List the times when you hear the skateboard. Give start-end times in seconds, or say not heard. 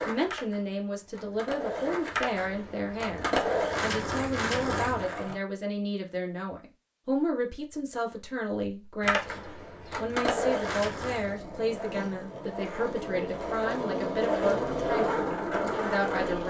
0.0-5.3, 9.0-16.4.